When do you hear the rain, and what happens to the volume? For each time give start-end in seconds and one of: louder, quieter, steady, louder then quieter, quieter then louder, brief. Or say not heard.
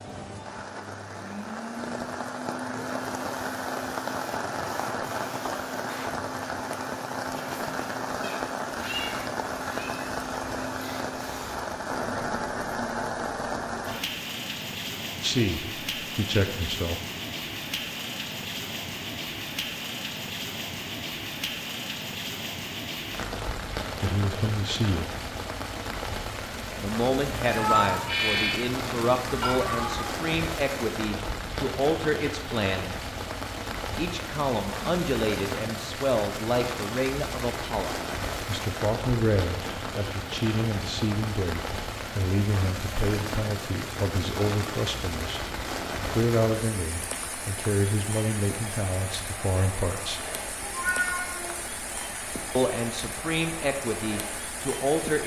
0.0-55.2 steady.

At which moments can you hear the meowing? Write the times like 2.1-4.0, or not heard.
8.2-9.9, 27.5-30.1, 50.6-51.6.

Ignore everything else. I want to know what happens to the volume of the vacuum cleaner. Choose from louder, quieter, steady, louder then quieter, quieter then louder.
steady.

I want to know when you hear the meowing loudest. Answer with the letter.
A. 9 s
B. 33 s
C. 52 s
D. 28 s
D.